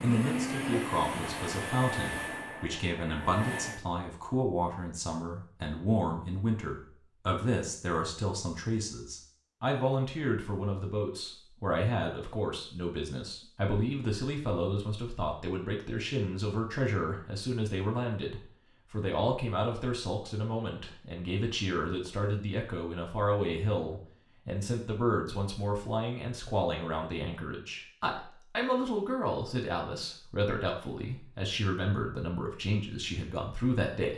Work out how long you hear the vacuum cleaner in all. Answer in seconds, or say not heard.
4 s.